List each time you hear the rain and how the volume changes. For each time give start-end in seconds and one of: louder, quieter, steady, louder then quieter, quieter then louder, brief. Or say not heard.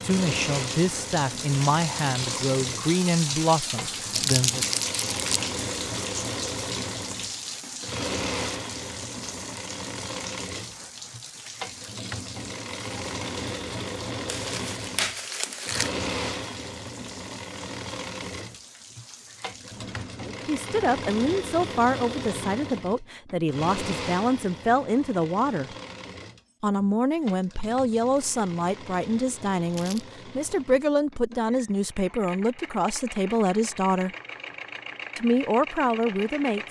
0.0-20.3 quieter.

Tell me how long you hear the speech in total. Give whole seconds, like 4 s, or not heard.
19 s.